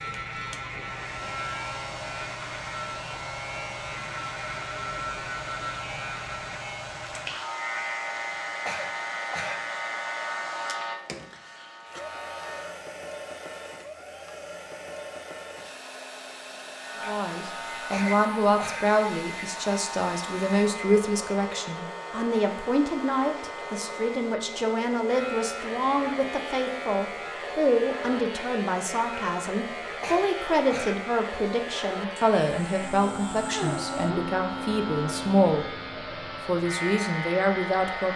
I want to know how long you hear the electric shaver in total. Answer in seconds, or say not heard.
34 s.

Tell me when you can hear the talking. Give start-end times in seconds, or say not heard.
17.1-35.7, 36.5-38.1.